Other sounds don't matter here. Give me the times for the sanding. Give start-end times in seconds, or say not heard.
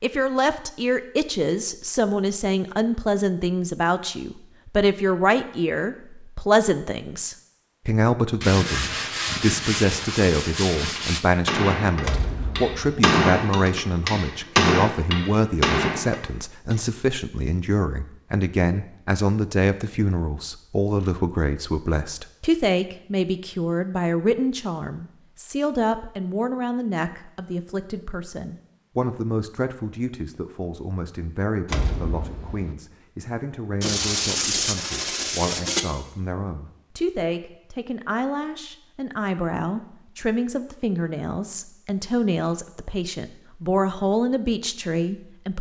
8.4-11.2, 33.8-35.8.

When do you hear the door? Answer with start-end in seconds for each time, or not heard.
12.0-13.0, 31.6-32.8.